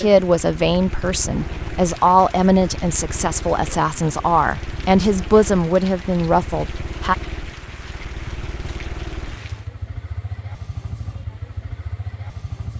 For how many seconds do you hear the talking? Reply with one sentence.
You can hear the talking for 7 seconds altogether.